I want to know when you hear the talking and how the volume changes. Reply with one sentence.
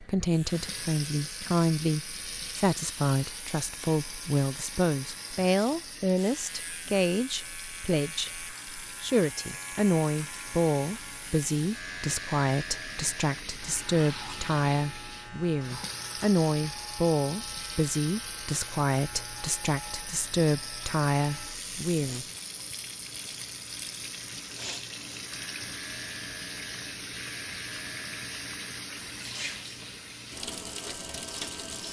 You can hear the talking from 0.0 to 22.2 s, at a steady volume.